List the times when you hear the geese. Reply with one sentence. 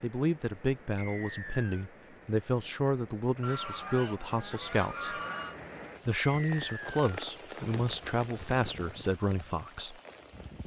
The geese can be heard from 3.4 to 5.6 s.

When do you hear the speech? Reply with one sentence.
You can hear the speech from 0.0 to 5.2 s and from 6.0 to 9.9 s.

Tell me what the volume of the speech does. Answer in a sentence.
The volume of the speech stays about the same.